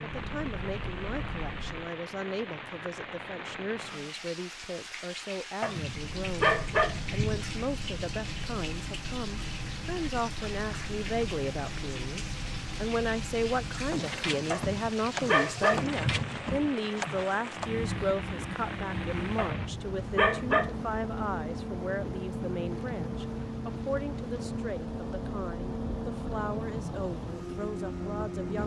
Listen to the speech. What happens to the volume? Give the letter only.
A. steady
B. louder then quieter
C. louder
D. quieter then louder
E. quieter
B.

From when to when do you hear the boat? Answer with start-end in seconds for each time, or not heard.
0.0-1.9, 5.8-28.6.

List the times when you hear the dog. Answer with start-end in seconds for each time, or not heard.
5.6-7.5, 14.5-16.4, 19.4-20.8.